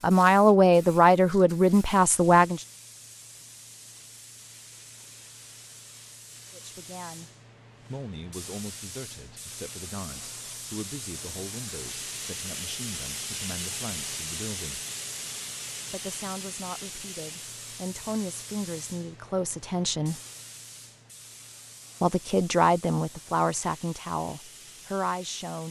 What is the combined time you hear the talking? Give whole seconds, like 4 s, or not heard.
19 s.